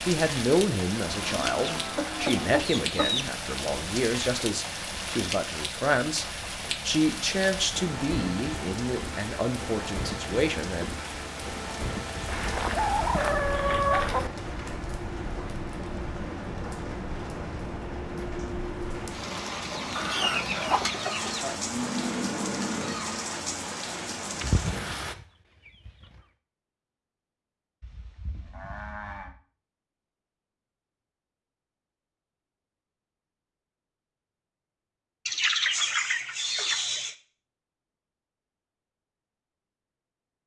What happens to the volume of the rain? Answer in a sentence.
The loudness of the rain stays about the same.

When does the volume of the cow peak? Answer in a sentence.
The loudest moment of the cow is at 22 seconds.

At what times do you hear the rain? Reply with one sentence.
You can hear the rain from 0.0 to 25.1 s.